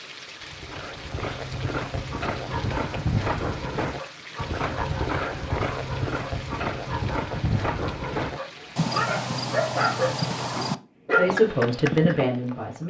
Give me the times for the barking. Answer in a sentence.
The barking can be heard from 1.9 to 11.3 s.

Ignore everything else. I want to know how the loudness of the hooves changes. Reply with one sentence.
The volume of the hooves stays about the same.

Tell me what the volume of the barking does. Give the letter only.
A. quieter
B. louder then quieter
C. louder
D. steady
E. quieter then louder
C.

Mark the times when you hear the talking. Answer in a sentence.
The talking can be heard from 11.1 to 12.8 s.